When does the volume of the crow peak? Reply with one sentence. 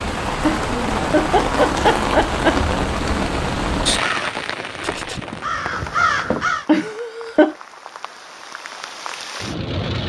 The loudest moment of the crow is at 6 seconds.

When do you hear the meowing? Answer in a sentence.
The meowing can't be heard in this clip.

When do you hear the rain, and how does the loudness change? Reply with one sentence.
The rain can be heard from 0.0 to 10.0 s, getting quieter then louder.